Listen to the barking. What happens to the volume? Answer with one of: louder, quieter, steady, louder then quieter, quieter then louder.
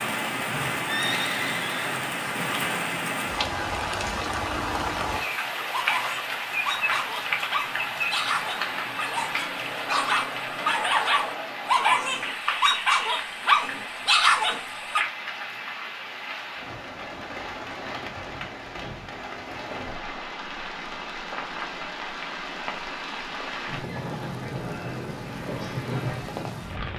louder.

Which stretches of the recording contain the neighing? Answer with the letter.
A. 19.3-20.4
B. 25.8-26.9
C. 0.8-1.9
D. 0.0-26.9
C.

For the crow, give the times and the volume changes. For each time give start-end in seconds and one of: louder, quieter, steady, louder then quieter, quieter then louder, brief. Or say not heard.
not heard.